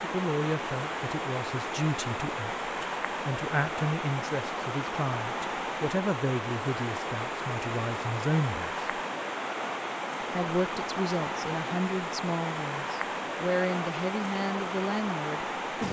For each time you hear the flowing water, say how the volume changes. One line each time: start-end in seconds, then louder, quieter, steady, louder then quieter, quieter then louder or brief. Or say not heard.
0.0-15.8 steady.